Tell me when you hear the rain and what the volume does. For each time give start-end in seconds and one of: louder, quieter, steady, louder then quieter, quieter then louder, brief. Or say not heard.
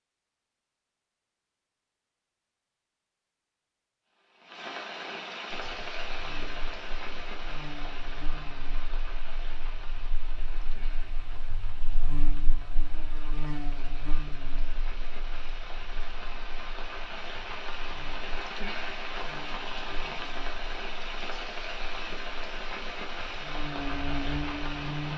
4.0-25.1 quieter then louder.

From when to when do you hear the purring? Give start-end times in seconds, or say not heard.
not heard.